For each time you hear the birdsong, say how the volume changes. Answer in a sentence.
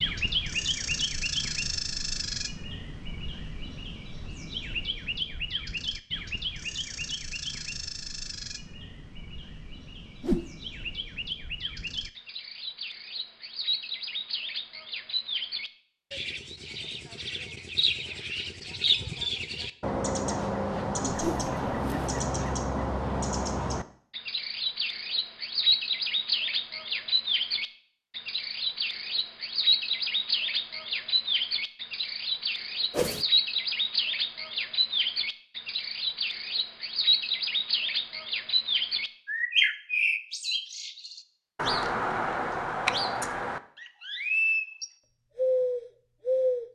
You can hear the birdsong from 0.0 to 46.6 s, getting louder.